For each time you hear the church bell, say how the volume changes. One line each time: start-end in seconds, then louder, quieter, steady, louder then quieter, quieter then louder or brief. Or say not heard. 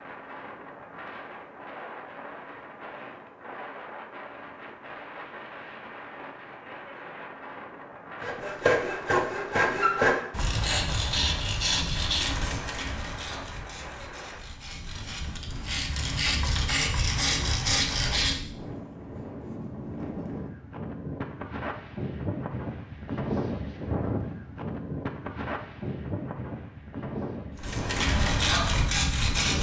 not heard.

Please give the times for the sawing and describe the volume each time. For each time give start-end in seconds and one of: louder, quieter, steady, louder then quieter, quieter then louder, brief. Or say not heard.
8.2-18.4 quieter then louder
27.6-29.5 brief.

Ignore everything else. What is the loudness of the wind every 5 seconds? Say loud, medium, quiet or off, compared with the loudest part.
medium, medium, medium, medium, loud, loud.